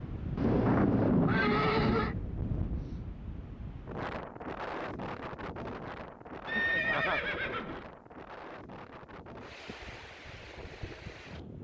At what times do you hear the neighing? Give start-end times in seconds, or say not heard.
0.3-2.1, 6.5-7.8.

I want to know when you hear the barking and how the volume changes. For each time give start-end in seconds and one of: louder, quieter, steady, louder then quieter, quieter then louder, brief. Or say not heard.
not heard.